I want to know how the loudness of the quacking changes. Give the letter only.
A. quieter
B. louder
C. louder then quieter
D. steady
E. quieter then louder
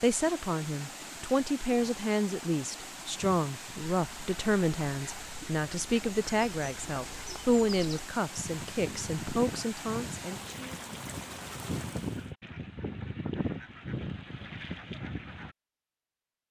B.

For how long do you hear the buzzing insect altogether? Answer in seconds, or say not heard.
not heard.